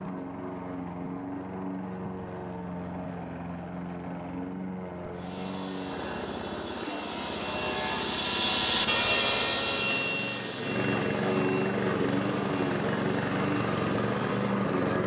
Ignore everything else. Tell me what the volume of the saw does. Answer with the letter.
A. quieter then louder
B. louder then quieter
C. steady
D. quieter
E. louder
B.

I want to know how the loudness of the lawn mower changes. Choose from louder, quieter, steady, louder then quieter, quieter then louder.
louder.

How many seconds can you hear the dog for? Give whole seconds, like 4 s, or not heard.
not heard.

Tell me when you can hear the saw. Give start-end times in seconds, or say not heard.
5.1-14.7.